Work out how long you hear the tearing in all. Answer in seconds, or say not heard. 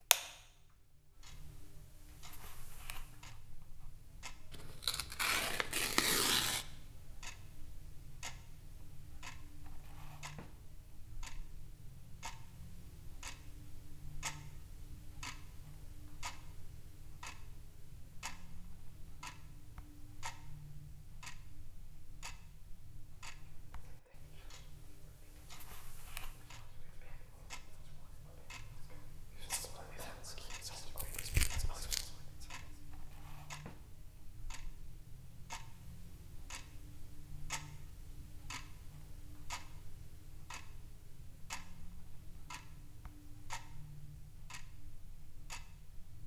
3 s.